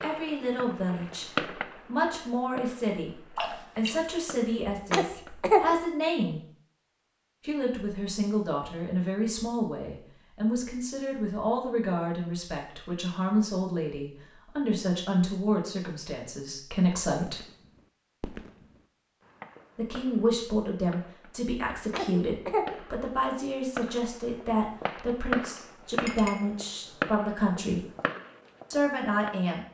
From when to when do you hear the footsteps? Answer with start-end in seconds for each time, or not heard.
not heard.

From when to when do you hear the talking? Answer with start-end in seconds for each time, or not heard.
0.0-6.4, 7.4-17.4, 19.8-27.9, 28.7-29.6.